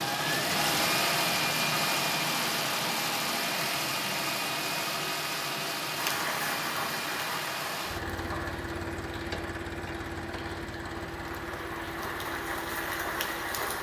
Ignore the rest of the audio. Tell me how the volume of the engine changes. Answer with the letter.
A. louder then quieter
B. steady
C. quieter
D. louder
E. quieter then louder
C.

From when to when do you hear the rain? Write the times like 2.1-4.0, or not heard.
5.9-13.7.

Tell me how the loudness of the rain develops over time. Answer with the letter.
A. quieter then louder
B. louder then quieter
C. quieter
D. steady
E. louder
A.